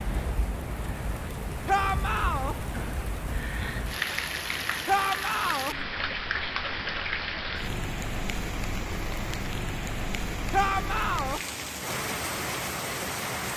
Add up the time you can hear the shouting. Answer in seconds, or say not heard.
3 s.